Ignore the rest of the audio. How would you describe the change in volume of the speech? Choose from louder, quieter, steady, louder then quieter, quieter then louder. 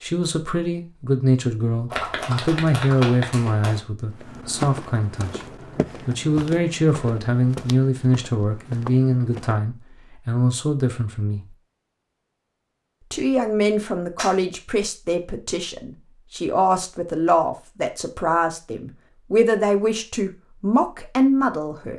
steady.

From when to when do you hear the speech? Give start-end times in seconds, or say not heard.
0.0-5.4, 6.0-11.4, 13.1-21.9.